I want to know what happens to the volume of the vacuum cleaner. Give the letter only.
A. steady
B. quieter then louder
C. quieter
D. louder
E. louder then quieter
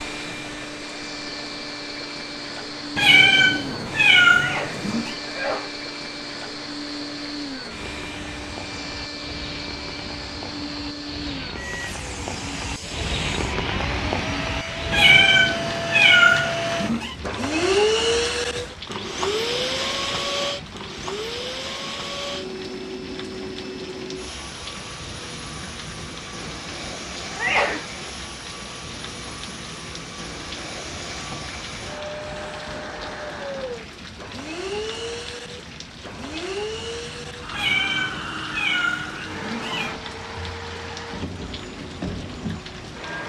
E.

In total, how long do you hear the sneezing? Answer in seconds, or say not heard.
2 s.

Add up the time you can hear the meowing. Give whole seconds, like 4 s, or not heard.
7 s.